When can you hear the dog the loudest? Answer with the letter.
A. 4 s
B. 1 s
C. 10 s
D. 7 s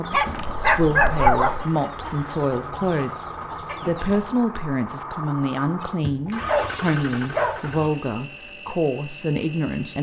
B.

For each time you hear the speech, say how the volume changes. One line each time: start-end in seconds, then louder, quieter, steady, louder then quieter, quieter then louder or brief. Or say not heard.
0.0-9.9 steady.